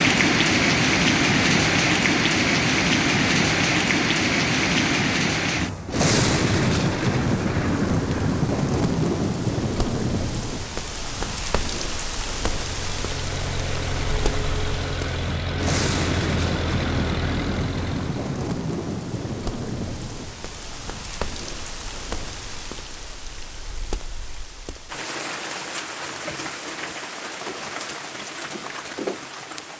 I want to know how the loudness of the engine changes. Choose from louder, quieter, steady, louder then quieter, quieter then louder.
steady.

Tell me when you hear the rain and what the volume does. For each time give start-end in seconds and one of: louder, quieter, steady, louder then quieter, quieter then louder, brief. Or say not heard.
0.0-29.7 quieter.